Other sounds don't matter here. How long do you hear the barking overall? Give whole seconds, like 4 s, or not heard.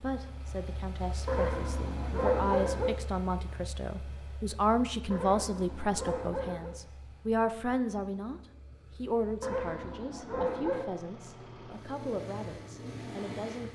5 s.